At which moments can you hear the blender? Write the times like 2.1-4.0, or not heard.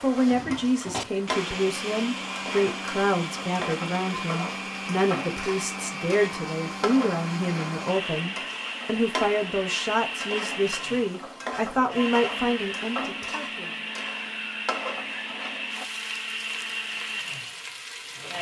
0.1-18.3.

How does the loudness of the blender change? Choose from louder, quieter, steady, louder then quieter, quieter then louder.
steady.